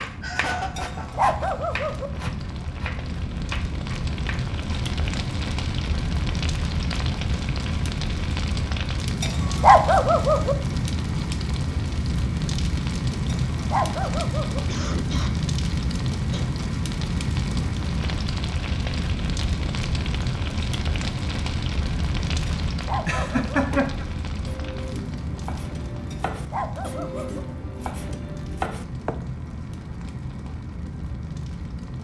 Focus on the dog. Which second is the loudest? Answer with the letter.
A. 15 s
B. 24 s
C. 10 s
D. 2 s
C.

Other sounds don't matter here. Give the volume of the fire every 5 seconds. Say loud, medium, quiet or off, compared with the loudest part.
medium, loud, loud, loud, loud, medium, medium.